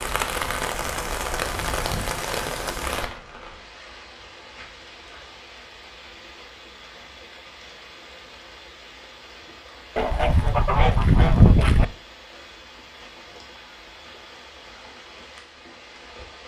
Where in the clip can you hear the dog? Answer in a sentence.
The dog can't be heard in this clip.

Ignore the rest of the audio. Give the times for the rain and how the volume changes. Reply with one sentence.
The rain can be heard from 0.0 to 16.4 s, getting quieter.